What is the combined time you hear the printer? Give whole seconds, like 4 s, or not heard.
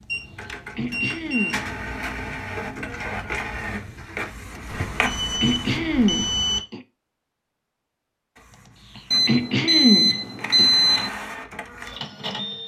10 s.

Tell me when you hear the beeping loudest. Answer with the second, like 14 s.
11 s.